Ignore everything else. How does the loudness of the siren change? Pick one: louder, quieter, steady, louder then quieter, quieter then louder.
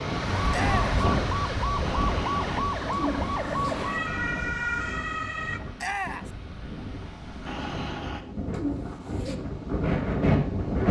steady.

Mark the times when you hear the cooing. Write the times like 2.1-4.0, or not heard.
1.9-3.8, 7.5-9.3.